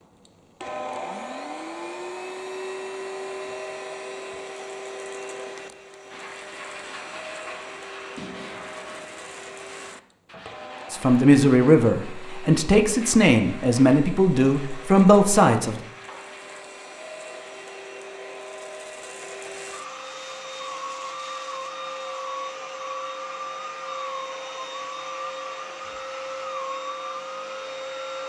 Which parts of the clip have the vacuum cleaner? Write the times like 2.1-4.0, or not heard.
0.0-28.2.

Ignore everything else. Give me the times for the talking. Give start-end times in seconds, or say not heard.
10.9-15.8.